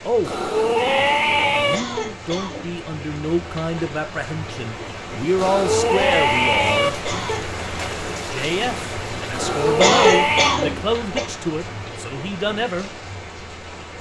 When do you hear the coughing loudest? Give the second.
10 s.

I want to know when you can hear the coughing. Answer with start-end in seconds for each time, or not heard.
1.7-2.8, 7.0-7.5, 9.8-11.2.